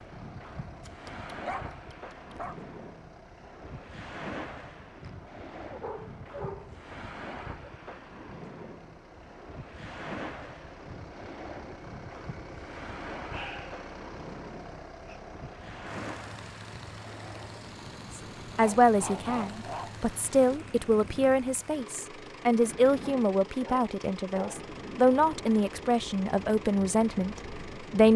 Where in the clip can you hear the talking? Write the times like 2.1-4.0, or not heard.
18.6-28.1.